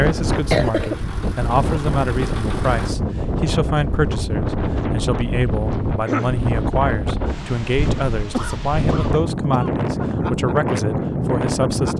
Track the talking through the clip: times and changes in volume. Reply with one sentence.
You can hear the talking from 0.0 to 11.9 s, at a steady volume.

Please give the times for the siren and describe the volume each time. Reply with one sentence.
You can't hear the siren here.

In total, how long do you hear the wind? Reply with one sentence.
The wind can be heard for 12 seconds in total.